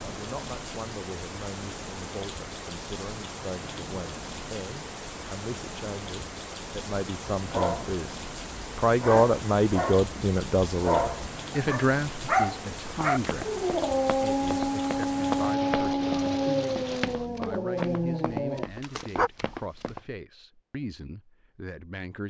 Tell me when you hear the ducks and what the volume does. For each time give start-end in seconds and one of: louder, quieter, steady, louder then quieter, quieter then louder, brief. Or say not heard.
not heard.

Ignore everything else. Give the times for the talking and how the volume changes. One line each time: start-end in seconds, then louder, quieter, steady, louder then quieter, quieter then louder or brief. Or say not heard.
0.0-22.2 louder then quieter.